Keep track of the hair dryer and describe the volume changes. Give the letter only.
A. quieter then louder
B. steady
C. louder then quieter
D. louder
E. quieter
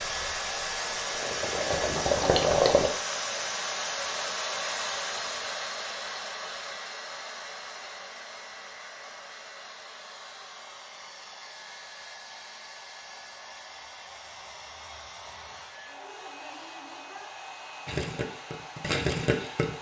E.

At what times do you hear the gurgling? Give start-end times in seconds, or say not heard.
0.0-2.9, 17.9-19.7.